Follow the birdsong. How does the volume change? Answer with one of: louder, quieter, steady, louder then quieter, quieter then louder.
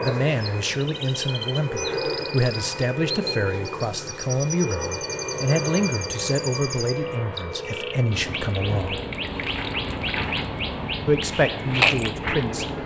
louder.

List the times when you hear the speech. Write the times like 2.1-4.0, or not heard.
0.0-9.0, 11.1-12.8.